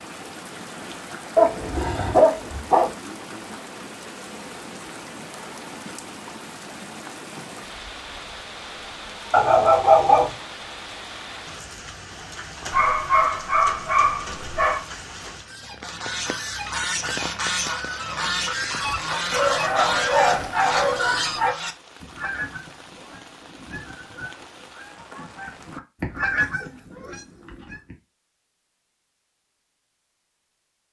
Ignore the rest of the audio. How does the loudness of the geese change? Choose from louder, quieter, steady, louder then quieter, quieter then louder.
quieter then louder.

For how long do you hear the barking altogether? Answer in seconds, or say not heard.
9 s.